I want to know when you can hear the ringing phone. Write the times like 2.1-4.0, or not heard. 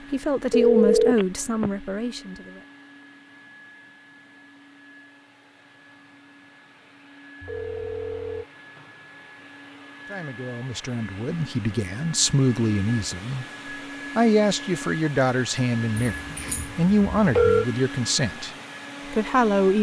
0.5-1.7, 7.4-8.4, 16.0-17.6.